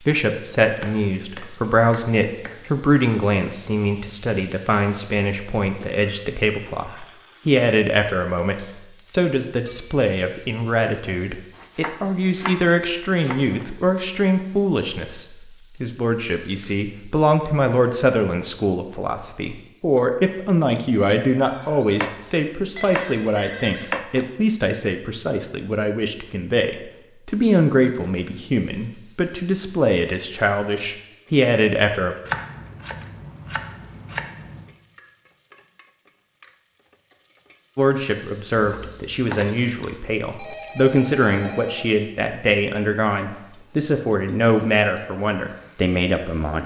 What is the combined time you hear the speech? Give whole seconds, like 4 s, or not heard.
41 s.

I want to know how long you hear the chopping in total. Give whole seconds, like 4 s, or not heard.
11 s.